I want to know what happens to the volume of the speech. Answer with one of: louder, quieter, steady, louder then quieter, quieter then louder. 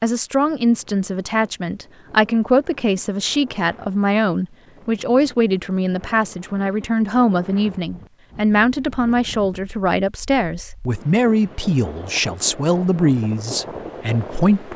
steady.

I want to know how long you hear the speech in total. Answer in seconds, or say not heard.
15 s.